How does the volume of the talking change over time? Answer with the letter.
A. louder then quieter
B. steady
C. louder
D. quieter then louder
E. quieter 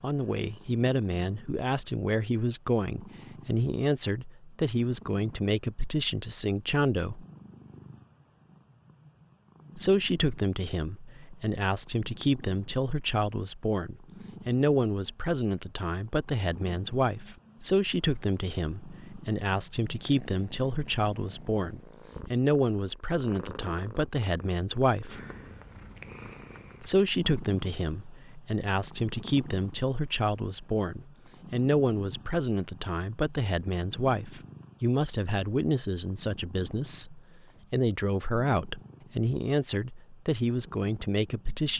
B.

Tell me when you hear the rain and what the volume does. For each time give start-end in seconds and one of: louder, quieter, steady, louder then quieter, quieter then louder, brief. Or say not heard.
not heard.